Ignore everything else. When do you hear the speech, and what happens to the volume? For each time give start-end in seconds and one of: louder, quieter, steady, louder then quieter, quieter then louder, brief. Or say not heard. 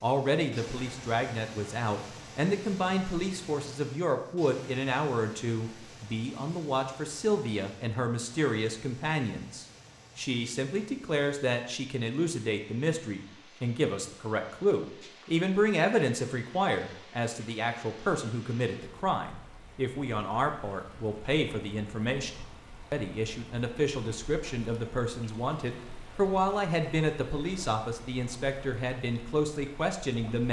0.0-30.4 steady.